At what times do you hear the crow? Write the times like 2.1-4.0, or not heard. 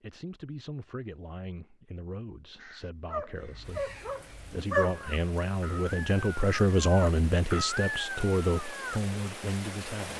2.5-9.0.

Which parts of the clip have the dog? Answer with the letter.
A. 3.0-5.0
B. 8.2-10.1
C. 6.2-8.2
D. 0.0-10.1
A.